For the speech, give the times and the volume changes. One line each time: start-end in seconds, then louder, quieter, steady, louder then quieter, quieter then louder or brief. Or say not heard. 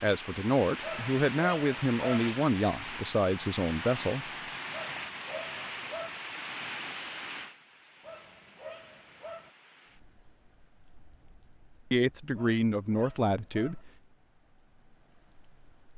0.0-4.2 steady
11.9-13.8 brief.